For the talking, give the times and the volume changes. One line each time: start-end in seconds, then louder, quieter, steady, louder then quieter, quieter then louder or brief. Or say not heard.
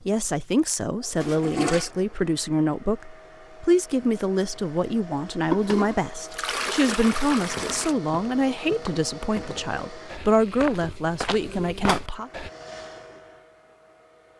0.1-12.3 steady.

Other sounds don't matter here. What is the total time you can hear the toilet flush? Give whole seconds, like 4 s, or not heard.
4 s.